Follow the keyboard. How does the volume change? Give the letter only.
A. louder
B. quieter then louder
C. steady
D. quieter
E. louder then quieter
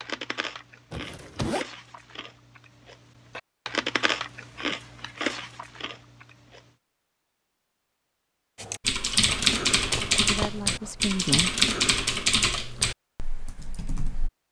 D.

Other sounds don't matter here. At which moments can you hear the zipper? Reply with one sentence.
The zipper can be heard from 0.9 to 1.6 s and from 9.2 to 11.4 s.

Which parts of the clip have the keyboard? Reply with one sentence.
The keyboard can be heard from 8.6 to 14.3 s.